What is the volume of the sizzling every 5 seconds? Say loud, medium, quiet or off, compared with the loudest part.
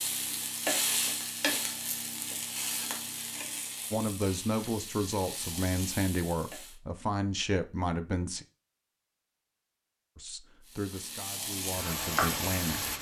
loud, medium, loud.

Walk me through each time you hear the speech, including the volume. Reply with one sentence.
You can hear the speech from 3.9 to 8.4 s, at a steady volume; and briefly from 10.2 to 12.9 s.